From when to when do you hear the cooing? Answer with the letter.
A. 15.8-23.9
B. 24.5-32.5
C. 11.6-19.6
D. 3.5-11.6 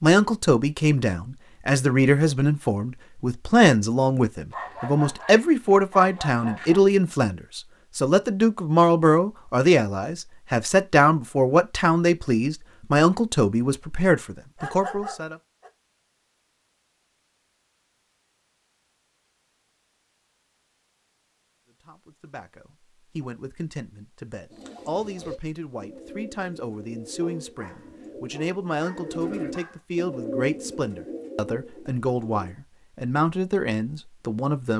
B.